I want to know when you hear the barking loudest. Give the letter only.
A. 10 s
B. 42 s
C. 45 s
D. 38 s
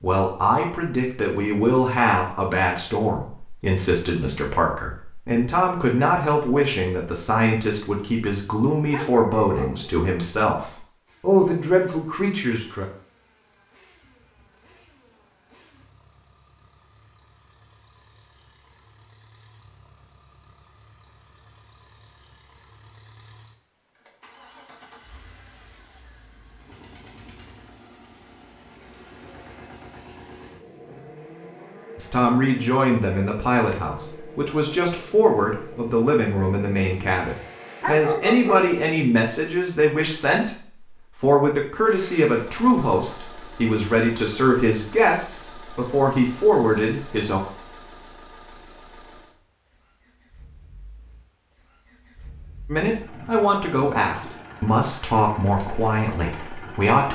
D.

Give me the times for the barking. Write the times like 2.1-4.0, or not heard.
8.9-9.9, 37.8-38.7.